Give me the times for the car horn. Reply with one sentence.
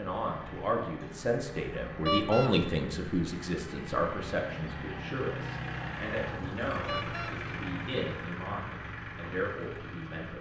You can hear the car horn from 2.0 to 2.5 s and from 6.8 to 7.3 s.